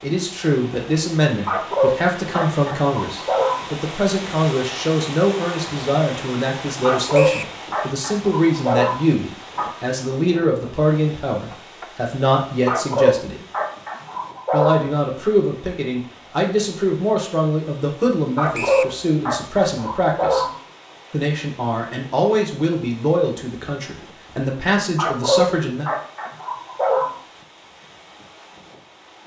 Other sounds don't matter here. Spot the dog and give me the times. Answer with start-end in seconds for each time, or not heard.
1.4-3.6, 6.8-9.7, 12.7-14.8, 18.4-20.5, 24.9-27.1.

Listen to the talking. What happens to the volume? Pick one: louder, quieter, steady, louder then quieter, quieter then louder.
steady.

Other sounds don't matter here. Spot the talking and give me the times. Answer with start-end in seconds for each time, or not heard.
0.0-13.4, 14.5-20.4, 21.1-25.9.